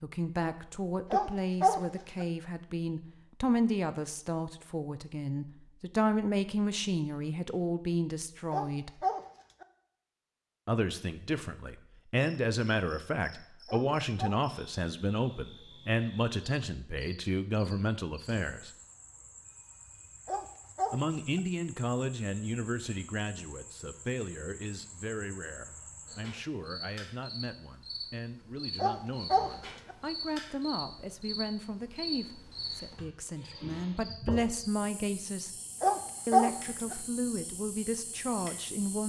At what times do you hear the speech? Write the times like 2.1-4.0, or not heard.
0.0-9.1, 10.7-18.7, 20.9-35.5, 36.2-39.0.